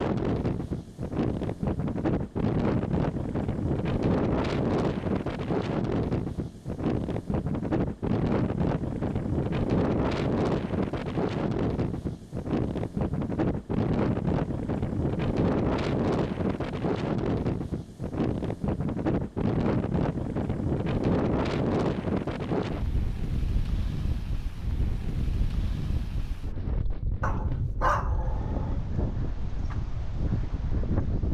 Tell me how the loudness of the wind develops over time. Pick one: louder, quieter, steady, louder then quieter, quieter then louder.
quieter.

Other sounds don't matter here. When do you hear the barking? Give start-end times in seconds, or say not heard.
27.2-28.8.